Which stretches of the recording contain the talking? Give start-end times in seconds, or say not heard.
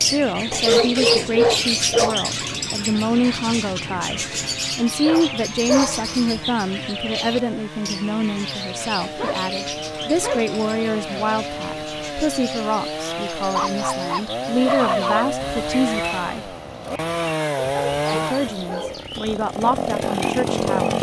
0.0-16.6, 18.1-20.9.